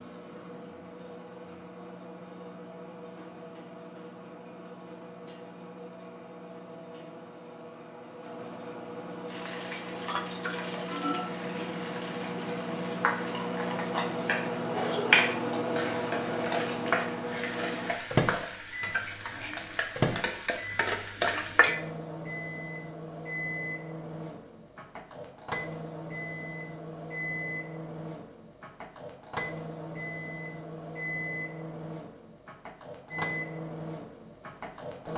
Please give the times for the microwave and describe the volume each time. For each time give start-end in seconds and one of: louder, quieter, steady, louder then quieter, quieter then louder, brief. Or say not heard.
0.0-35.1 louder then quieter.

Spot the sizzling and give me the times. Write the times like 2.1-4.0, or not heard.
9.3-21.8.